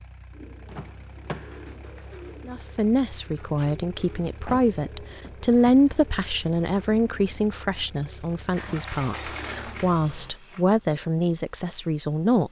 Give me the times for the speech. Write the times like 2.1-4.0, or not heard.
2.5-12.4.